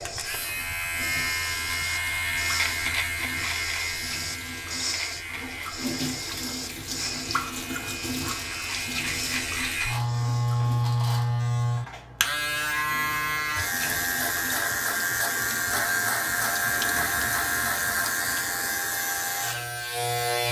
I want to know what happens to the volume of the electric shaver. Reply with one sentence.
The loudness of the electric shaver goes down, then up.